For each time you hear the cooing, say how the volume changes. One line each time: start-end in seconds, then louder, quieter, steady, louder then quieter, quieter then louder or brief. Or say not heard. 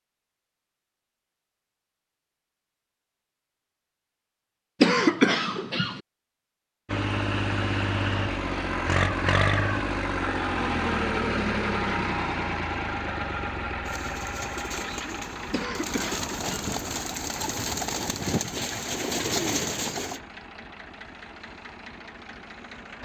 13.8-20.2 louder.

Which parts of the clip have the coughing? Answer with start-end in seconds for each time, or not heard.
4.8-6.0, 15.5-16.8.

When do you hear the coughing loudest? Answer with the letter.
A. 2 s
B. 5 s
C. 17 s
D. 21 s
B.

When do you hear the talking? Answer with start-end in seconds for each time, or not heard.
not heard.